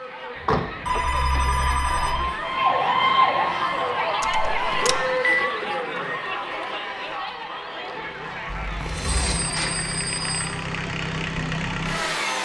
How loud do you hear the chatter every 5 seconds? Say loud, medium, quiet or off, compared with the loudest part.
loud, loud, medium.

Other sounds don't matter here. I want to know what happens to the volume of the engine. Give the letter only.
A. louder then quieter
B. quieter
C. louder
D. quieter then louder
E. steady
C.